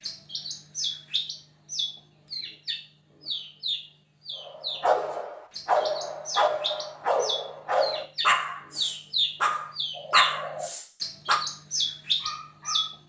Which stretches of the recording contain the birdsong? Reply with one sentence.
The birdsong can be heard from 0.0 to 12.8 s.